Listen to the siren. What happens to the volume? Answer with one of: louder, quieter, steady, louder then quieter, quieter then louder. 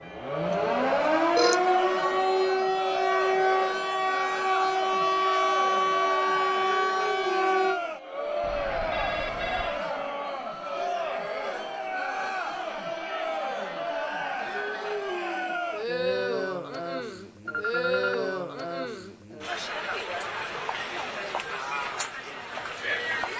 steady.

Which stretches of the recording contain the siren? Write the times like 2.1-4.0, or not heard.
0.0-7.8.